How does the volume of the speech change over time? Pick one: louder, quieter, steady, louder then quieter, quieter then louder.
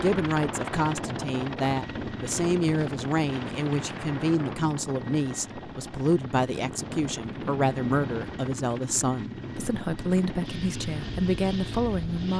steady.